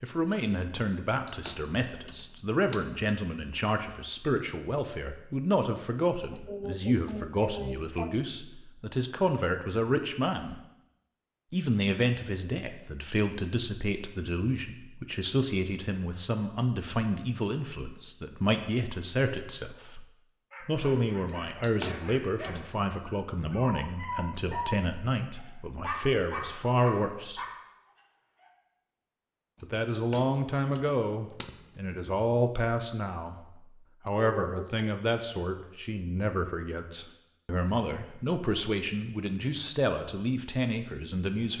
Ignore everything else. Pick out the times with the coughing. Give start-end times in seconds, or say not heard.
6.3-8.2, 34.0-35.0.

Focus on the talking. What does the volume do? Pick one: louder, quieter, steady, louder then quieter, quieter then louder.
steady.